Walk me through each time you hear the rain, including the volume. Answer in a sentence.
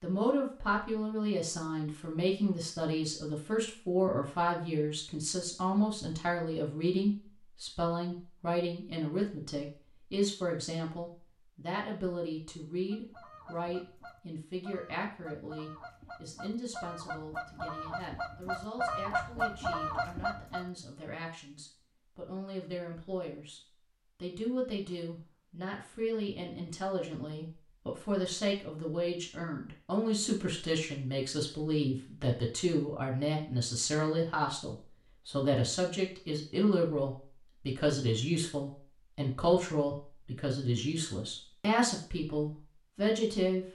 The rain can't be heard in this clip.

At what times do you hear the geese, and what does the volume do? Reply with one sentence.
The geese can be heard from 12.9 to 20.6 s, getting louder.